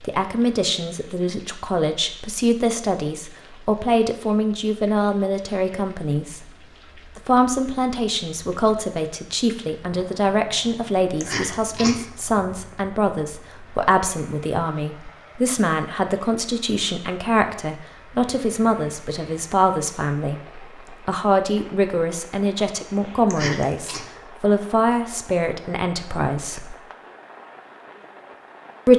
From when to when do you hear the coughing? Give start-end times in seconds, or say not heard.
11.2-12.1, 23.2-24.1.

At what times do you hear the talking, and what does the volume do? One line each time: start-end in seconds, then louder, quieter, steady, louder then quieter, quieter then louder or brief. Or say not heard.
0.0-26.8 steady.